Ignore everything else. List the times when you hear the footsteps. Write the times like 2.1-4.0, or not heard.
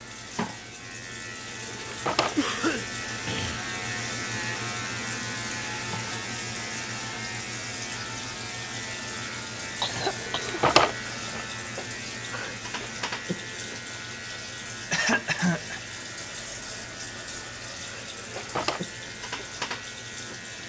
not heard.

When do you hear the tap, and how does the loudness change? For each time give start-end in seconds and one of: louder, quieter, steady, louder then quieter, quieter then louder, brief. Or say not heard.
0.0-20.6 steady.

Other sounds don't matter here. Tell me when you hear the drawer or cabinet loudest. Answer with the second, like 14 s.
11 s.